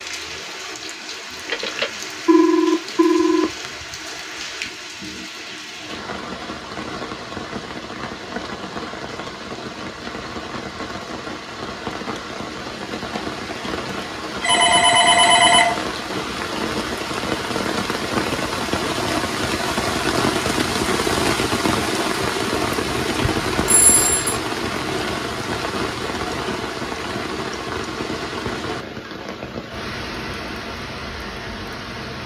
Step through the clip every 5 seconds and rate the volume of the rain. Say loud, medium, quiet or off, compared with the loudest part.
medium, medium, medium, loud, loud, medium, medium.